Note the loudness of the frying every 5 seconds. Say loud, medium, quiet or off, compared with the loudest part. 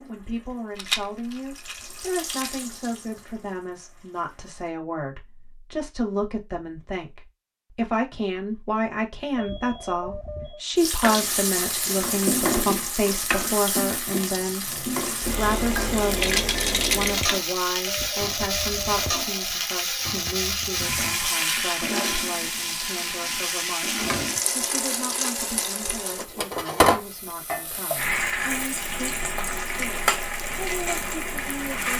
quiet, off, loud, loud, loud, loud, loud.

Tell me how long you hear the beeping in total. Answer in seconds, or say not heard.
3 s.